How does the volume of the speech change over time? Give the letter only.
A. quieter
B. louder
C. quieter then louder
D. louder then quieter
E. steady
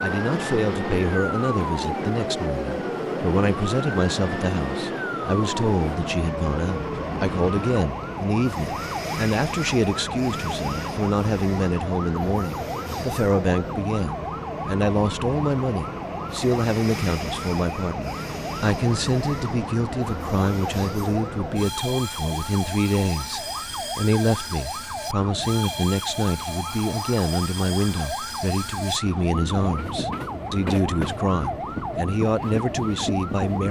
E.